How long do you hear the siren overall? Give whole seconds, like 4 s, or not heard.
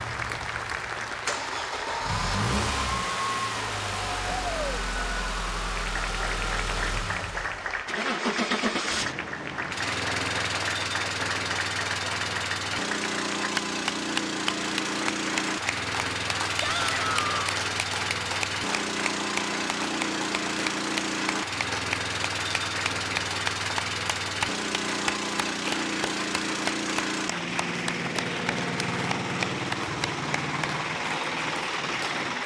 not heard.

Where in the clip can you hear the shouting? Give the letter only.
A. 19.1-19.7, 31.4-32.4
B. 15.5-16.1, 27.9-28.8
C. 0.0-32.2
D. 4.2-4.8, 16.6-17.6
D.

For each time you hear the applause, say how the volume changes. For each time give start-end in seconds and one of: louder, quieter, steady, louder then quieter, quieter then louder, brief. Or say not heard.
0.0-32.2 steady.